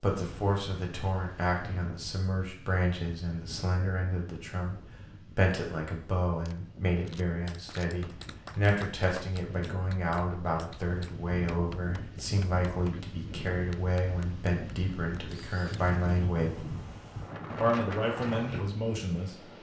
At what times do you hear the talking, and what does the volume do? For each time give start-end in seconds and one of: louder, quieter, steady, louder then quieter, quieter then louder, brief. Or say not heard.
0.0-16.7 steady
17.6-19.4 brief.